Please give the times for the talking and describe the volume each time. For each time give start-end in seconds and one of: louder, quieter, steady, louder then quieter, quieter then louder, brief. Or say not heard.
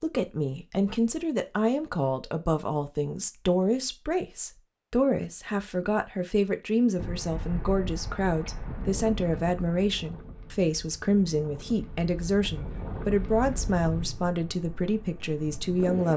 0.0-16.1 steady.